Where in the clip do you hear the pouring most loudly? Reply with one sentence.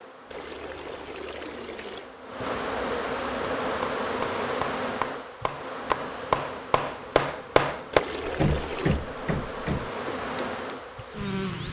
The volume of the pouring peaks at 8 seconds.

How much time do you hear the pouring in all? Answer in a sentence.
The pouring can be heard for 3 seconds in total.